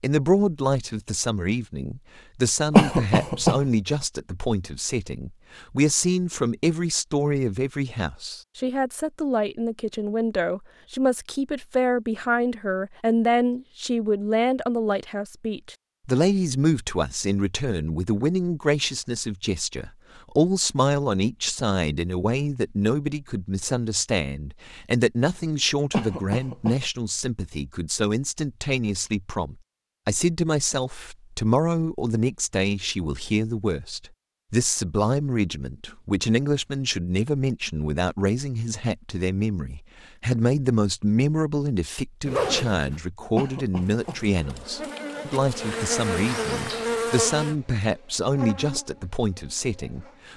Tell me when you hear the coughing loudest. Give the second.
3 s.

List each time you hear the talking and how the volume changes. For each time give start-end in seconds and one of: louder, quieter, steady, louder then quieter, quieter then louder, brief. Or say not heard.
0.0-50.3 steady.